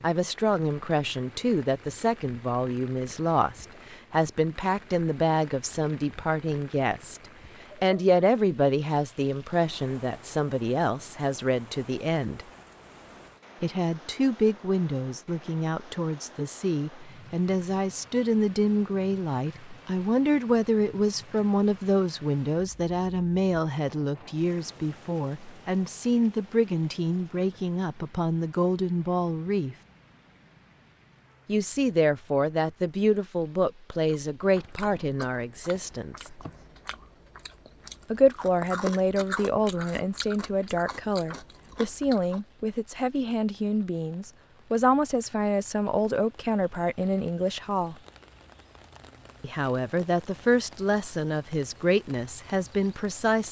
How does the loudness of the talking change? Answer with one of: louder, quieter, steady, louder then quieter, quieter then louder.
steady.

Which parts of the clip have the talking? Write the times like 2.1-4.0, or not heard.
0.0-7.2, 7.8-12.4, 13.6-29.8, 31.4-36.4, 38.1-48.0, 49.4-53.4.